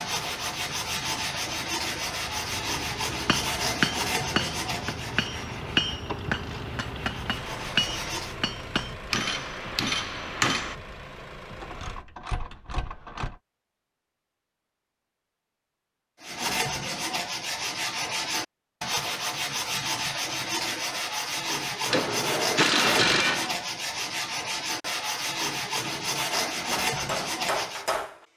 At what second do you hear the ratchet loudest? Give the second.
23 s.